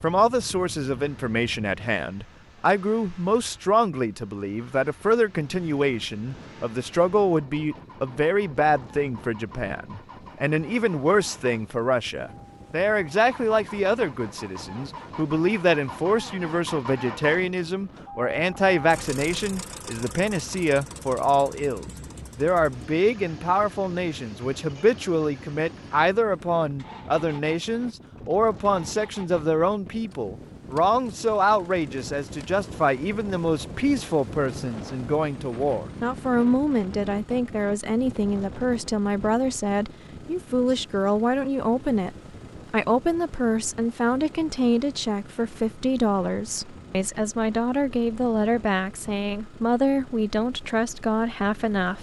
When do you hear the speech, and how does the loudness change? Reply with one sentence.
You can hear the speech from 0.0 to 51.9 s, at a steady volume.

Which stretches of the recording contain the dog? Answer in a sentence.
You can't hear the dog here.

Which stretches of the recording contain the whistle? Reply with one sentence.
The whistle can't be heard in this clip.